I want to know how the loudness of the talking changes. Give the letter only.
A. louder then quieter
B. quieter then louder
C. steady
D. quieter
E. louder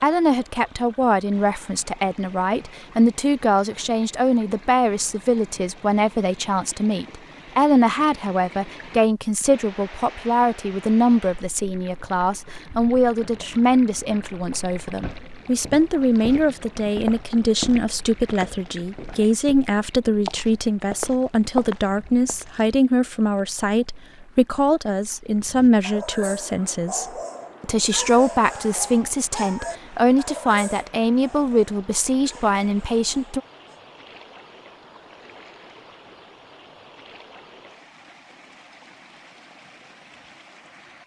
C.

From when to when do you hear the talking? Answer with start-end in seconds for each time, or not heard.
0.0-33.4.